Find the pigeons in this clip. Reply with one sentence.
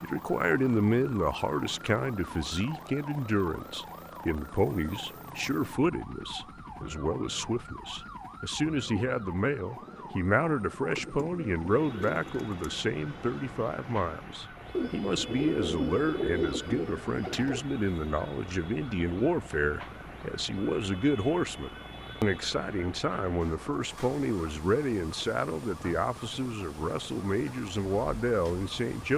The pigeons can be heard from 10.8 to 12.8 s and from 14.7 to 17.6 s.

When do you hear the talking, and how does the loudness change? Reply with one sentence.
You can hear the talking from 0.0 to 29.1 s, at a steady volume.